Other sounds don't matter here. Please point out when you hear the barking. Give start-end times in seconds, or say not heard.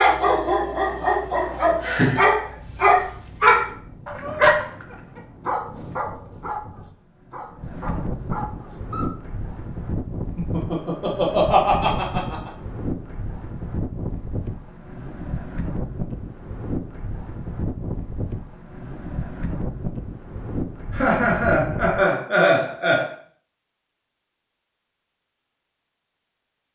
0.0-9.1.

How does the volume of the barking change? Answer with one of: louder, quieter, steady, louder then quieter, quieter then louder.
louder then quieter.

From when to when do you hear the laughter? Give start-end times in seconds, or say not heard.
1.8-2.2, 10.3-12.5, 20.9-23.1.